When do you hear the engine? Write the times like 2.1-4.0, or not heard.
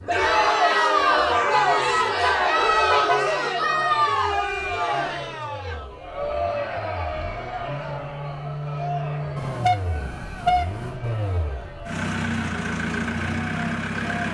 0.0-14.2.